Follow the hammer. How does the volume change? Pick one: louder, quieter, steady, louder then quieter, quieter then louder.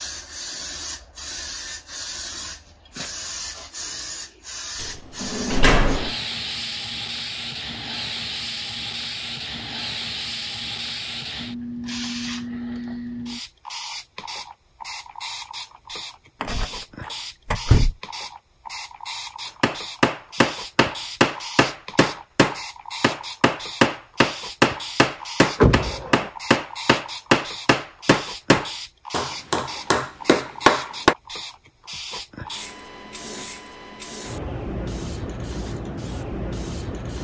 steady.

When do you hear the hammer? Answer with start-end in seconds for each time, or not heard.
19.6-31.1.